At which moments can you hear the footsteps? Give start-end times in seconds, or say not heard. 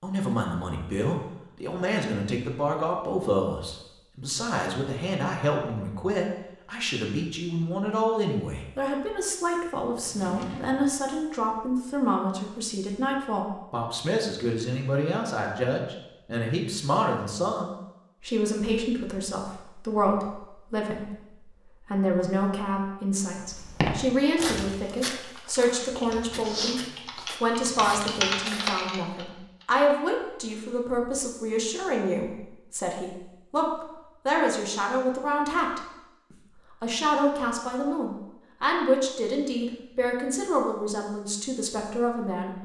23.6-28.8.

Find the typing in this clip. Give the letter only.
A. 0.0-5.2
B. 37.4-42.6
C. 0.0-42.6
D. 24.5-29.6
D.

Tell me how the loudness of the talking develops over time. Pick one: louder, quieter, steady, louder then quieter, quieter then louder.
steady.